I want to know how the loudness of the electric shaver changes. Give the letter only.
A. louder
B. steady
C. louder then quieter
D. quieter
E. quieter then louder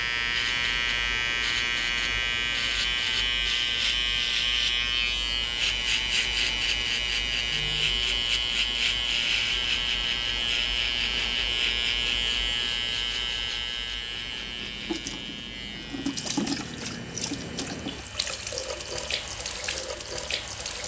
D.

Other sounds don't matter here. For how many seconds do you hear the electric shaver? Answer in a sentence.
The electric shaver can be heard for 21 seconds in total.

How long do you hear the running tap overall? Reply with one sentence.
The running tap can be heard for 7 seconds in total.